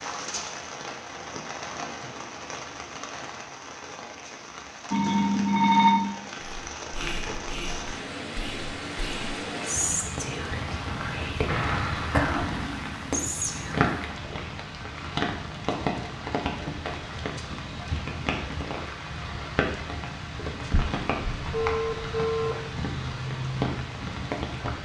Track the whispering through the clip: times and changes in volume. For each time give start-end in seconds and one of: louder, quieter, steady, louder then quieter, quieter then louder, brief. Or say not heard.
6.7-13.9 louder.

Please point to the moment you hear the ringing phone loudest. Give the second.
6 s.